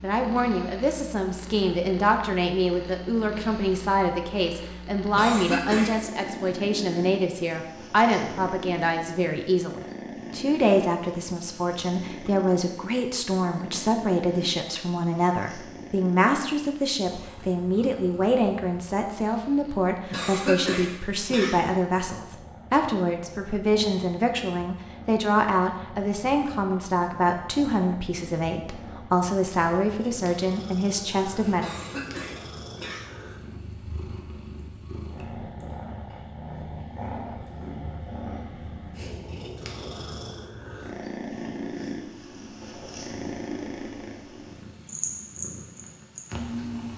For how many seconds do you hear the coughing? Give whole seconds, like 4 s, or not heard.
4 s.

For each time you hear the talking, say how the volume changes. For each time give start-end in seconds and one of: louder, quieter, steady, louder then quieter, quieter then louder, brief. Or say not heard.
0.0-31.7 steady.